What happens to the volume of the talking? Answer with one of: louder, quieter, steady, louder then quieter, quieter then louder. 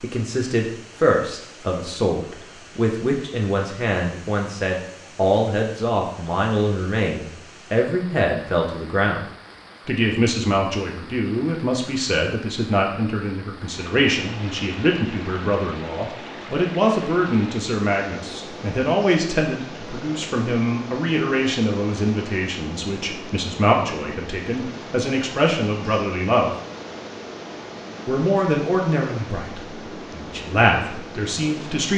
steady.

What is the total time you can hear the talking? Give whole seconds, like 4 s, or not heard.
30 s.